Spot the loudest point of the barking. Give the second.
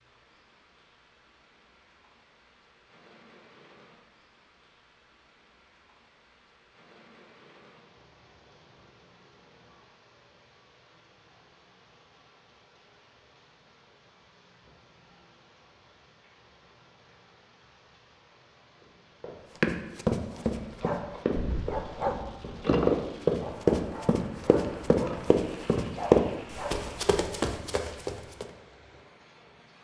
23 s.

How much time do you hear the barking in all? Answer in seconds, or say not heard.
7 s.